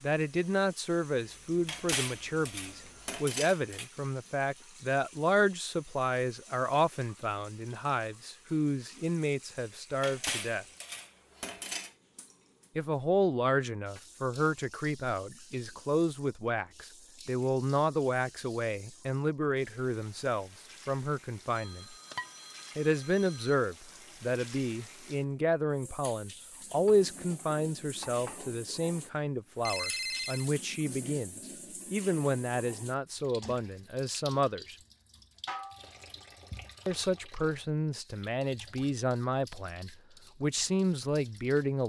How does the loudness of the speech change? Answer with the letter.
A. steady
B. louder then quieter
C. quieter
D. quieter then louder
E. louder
A.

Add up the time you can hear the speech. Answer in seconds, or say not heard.
37 s.